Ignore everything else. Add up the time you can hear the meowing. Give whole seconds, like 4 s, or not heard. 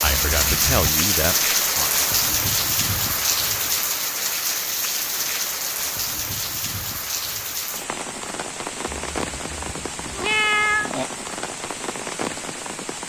3 s.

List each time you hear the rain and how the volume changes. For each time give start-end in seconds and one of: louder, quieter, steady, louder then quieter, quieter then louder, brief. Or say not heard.
0.0-13.0 quieter.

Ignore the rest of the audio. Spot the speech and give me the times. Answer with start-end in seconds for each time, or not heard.
0.0-1.9.